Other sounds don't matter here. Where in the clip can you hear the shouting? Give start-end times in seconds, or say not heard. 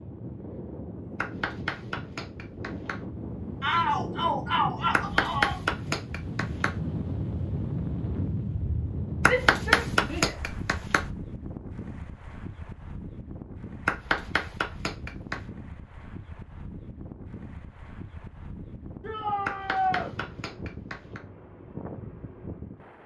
3.6-5.6, 9.2-10.6, 19.0-20.1.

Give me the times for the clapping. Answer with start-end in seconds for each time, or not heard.
1.1-3.0, 4.9-6.8, 9.2-11.1, 13.8-15.4, 19.4-21.2.